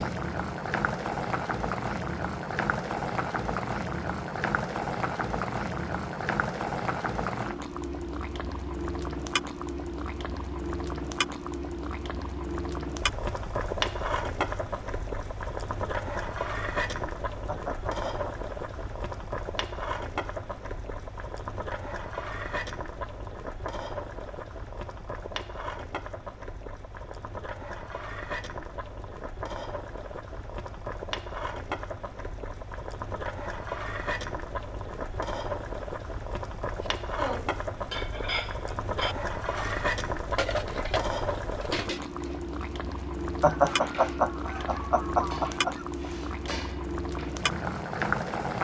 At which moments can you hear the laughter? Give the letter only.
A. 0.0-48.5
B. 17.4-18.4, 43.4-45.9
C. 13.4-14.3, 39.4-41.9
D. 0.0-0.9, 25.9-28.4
B.